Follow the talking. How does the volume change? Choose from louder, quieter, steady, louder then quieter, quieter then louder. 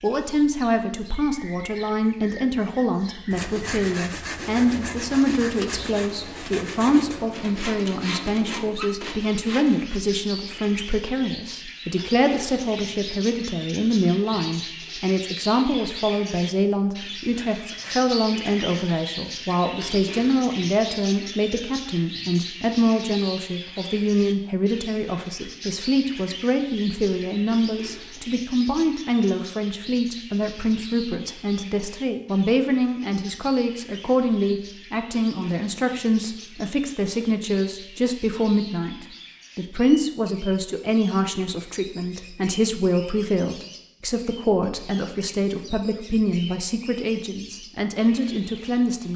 steady.